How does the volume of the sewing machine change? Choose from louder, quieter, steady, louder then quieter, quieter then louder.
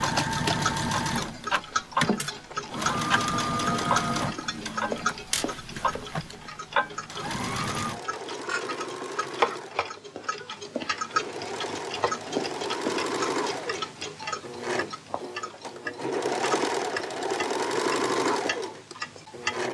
quieter then louder.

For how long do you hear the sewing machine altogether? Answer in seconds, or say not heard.
20 s.